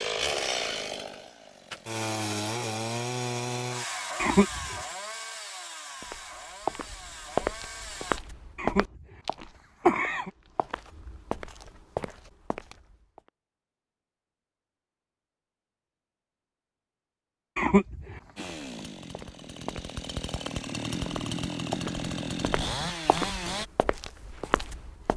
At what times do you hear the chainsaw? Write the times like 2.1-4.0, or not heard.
0.0-8.2, 18.4-23.6.